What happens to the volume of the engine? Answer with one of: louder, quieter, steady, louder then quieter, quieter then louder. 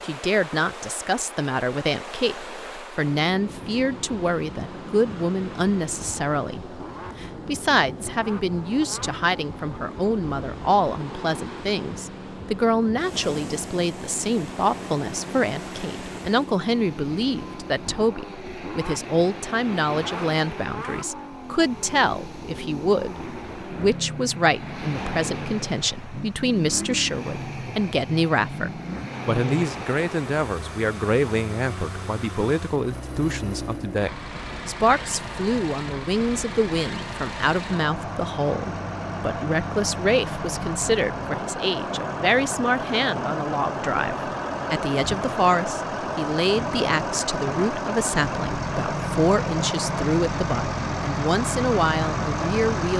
louder.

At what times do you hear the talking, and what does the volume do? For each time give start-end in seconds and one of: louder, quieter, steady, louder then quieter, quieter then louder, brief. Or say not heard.
0.0-52.9 steady.